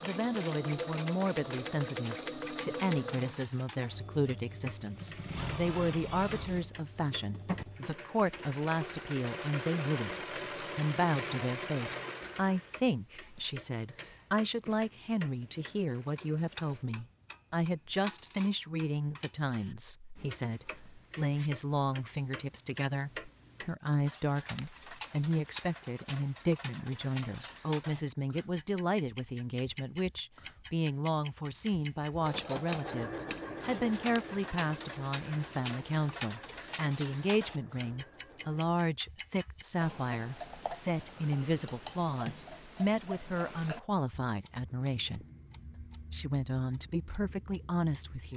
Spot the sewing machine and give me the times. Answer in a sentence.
The sewing machine can be heard from 0.0 to 16.9 s and from 31.7 to 38.8 s.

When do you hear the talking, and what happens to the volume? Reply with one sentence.
The talking can be heard from 0.0 to 45.2 s, at a steady volume; and briefly from 46.1 to 48.3 s.